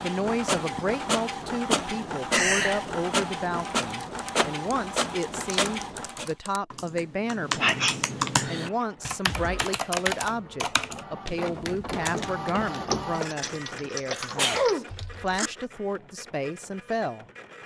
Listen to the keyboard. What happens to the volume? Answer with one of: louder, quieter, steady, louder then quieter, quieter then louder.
louder then quieter.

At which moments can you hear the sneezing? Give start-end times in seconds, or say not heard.
2.3-2.9, 7.6-8.0, 14.1-15.5.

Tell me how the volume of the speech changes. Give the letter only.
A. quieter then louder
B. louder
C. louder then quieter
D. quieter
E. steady
E.